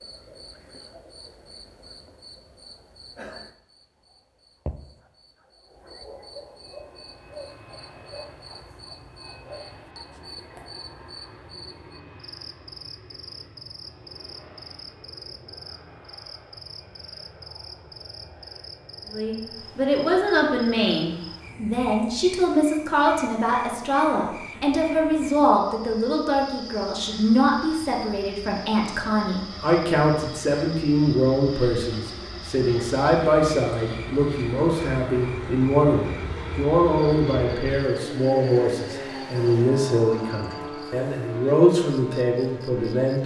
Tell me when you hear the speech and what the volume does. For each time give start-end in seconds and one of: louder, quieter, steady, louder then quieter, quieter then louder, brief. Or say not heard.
19.1-43.2 steady.